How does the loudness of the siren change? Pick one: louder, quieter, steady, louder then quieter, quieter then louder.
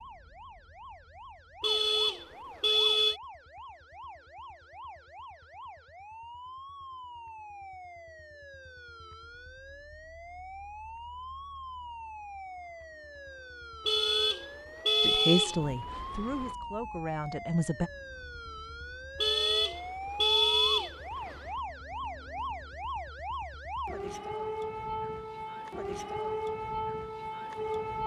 louder.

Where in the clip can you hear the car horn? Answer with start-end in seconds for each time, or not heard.
1.6-3.2, 13.8-16.6, 19.2-21.4.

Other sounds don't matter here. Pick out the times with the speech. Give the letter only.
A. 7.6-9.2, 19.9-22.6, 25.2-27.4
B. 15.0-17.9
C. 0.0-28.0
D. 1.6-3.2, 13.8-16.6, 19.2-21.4
B.